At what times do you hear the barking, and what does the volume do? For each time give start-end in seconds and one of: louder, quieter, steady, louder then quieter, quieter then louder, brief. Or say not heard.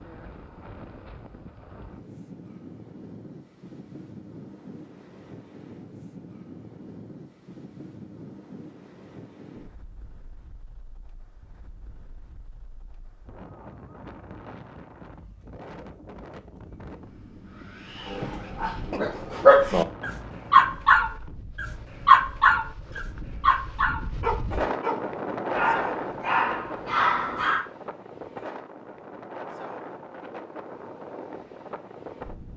18.1-27.6 quieter.